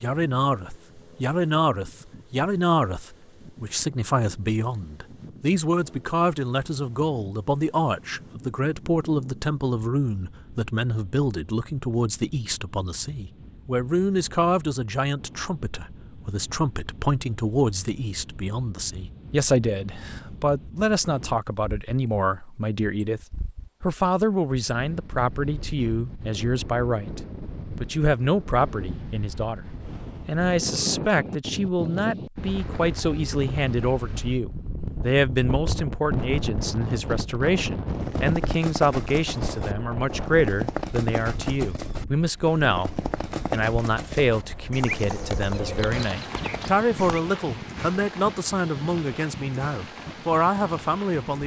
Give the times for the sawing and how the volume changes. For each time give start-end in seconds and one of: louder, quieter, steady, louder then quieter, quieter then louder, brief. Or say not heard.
not heard.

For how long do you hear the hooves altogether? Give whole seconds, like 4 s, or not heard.
9 s.